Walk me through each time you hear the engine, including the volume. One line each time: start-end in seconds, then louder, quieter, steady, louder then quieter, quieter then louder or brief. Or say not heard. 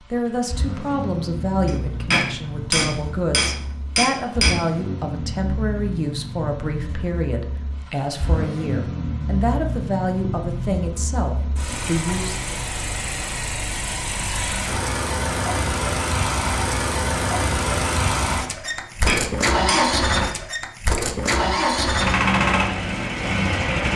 0.0-23.9 louder.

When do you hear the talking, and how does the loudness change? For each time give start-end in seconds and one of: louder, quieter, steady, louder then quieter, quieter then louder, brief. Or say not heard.
0.1-12.6 steady.